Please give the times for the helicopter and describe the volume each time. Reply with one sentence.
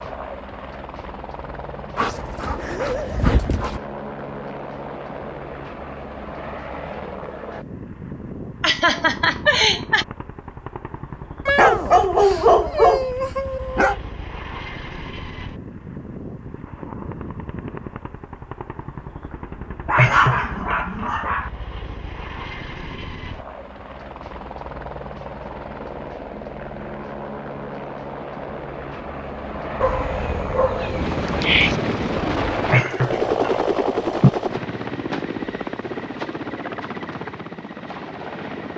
You can hear the helicopter from 0.0 to 38.7 s, getting louder.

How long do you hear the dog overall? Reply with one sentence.
The dog can be heard for 8 seconds in total.